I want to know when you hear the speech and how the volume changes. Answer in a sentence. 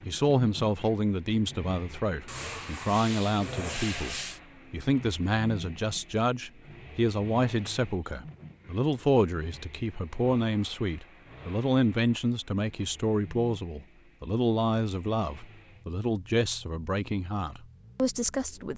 You can hear the speech from 0.1 to 18.7 s, at a steady volume.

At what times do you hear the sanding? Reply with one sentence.
The sanding can be heard from 2.2 to 4.4 s.